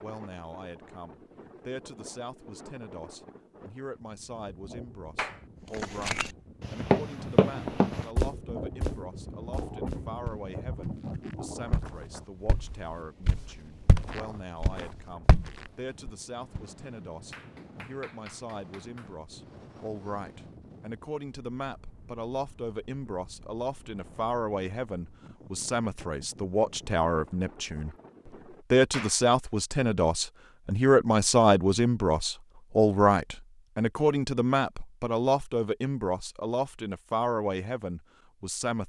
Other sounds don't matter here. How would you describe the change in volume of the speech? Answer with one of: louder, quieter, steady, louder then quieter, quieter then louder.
louder.